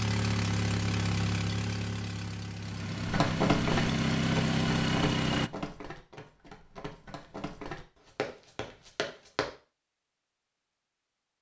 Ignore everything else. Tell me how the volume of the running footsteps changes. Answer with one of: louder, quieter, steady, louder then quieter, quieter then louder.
quieter then louder.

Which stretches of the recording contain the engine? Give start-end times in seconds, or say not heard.
0.0-5.5.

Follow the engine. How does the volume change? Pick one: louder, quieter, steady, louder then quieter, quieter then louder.
quieter then louder.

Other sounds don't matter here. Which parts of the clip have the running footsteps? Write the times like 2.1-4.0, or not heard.
3.0-9.6.